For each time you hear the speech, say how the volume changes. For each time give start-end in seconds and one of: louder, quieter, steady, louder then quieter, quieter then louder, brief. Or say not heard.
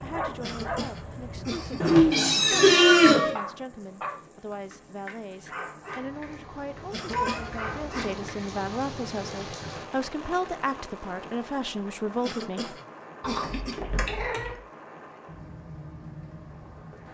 0.0-12.8 louder.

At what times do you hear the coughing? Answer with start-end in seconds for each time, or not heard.
0.4-2.0, 6.9-8.2, 12.2-13.8.